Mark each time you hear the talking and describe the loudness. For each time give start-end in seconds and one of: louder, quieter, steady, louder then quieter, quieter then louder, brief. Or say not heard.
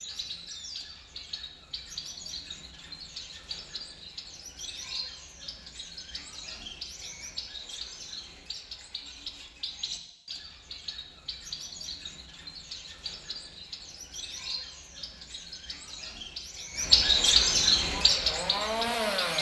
not heard.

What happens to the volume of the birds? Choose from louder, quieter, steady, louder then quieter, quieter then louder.
louder.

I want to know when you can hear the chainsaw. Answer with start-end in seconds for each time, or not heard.
17.9-19.3.